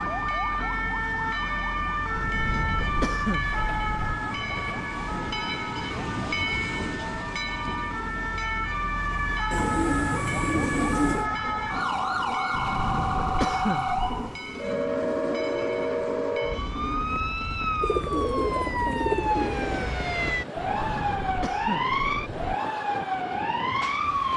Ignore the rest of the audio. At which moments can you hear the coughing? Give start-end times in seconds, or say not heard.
2.1-4.2, 12.5-14.3, 20.6-22.6.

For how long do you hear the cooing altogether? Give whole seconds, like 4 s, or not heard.
6 s.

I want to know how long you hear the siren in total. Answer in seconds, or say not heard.
24 s.